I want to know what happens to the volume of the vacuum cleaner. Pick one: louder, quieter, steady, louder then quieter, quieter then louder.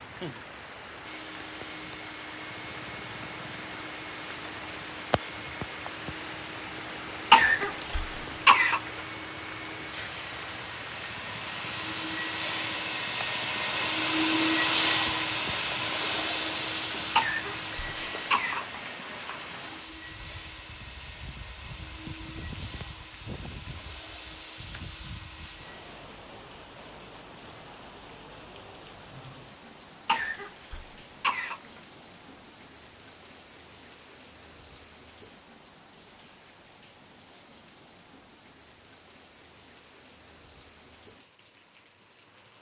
louder then quieter.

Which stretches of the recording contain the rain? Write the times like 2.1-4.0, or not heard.
0.0-42.5.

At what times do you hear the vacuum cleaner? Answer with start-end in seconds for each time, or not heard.
0.0-26.1.